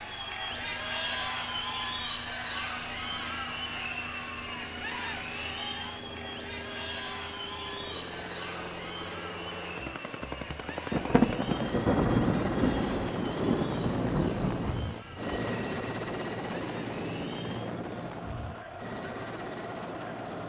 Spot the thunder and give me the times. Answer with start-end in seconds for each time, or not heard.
10.9-14.8.